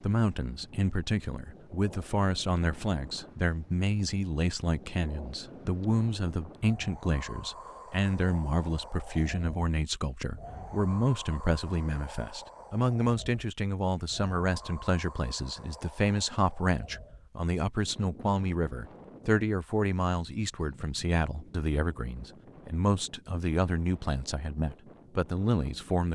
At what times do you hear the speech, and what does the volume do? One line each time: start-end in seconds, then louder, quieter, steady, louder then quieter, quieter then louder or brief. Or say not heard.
0.0-26.0 steady.